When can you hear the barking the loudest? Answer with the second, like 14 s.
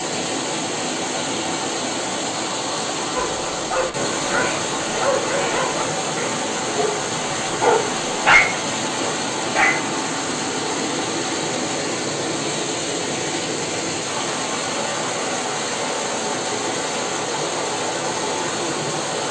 8 s.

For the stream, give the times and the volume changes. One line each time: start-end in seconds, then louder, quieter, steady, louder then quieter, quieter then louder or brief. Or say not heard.
0.0-19.2 steady.